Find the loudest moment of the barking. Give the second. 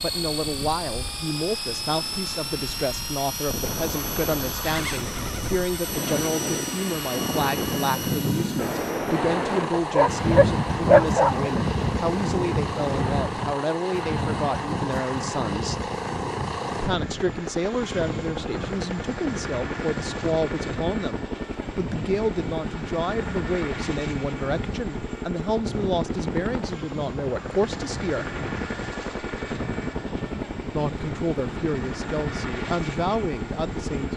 11 s.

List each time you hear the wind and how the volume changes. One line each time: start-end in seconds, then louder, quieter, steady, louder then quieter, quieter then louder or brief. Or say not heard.
0.0-34.1 louder then quieter.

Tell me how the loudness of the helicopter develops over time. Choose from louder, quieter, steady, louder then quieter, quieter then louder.
steady.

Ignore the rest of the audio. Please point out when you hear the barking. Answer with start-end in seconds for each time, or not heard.
9.7-11.5.